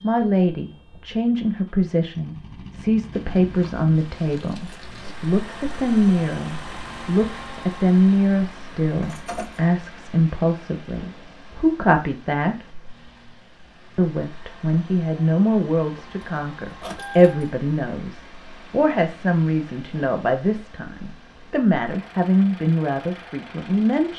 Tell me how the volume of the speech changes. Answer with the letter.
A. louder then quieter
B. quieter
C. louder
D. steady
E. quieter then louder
D.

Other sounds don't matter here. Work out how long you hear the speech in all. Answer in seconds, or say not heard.
23 s.